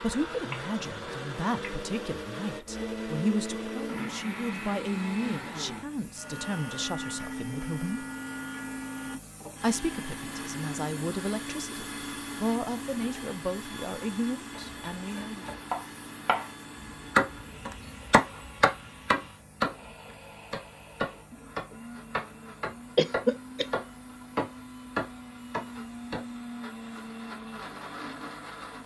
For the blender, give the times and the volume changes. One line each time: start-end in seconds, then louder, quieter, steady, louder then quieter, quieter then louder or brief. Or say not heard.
0.0-28.8 quieter then louder.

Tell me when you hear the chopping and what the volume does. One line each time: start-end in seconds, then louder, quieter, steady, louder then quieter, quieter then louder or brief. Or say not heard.
14.5-16.5 brief
17.1-26.2 quieter.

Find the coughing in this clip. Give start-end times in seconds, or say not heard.
22.9-23.6.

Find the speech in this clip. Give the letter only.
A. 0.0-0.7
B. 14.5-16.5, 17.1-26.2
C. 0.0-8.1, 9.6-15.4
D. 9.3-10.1
C.